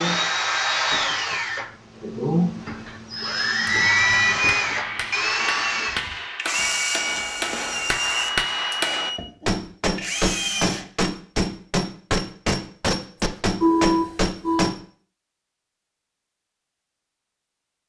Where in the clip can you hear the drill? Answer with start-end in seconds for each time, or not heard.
0.0-10.9.